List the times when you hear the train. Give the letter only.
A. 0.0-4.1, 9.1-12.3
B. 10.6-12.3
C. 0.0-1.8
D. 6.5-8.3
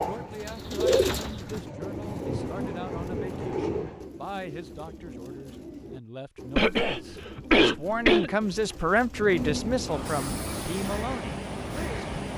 A.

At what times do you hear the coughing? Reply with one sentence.
You can hear the coughing from 6.5 to 8.3 s.